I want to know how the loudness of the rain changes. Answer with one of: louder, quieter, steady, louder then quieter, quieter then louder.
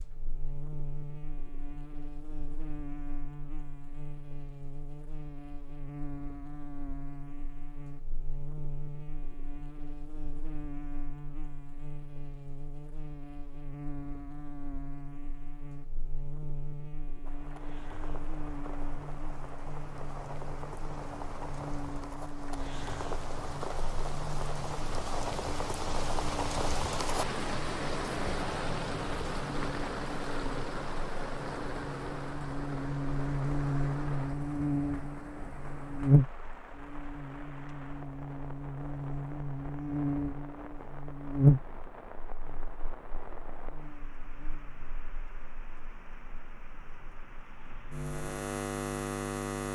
louder then quieter.